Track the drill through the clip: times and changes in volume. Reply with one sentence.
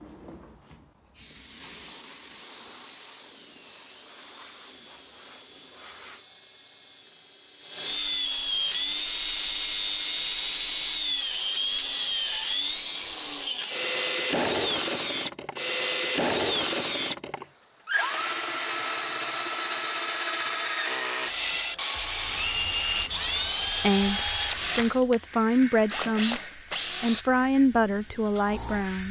You can hear the drill from 2.3 to 27.2 s, getting louder.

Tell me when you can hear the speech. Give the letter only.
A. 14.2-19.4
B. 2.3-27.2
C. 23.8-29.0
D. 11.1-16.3
C.